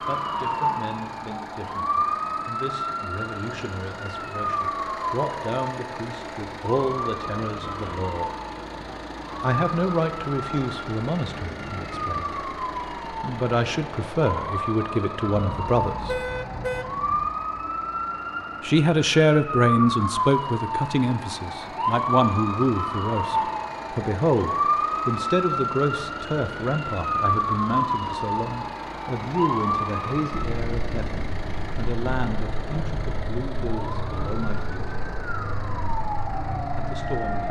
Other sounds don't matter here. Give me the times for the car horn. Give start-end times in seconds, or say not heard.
15.4-17.3.